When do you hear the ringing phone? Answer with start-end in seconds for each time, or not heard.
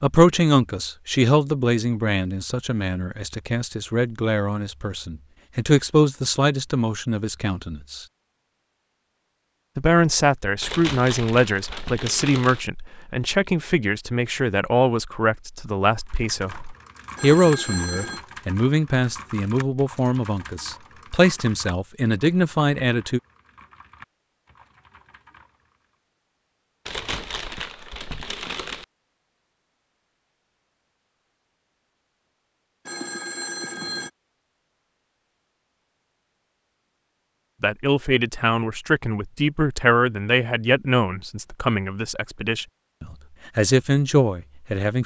17.1-18.2, 32.9-34.1.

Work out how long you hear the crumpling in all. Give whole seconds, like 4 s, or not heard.
4 s.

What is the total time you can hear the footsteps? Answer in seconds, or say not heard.
not heard.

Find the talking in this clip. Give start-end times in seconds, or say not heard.
0.0-8.1, 9.8-23.2, 37.6-45.0.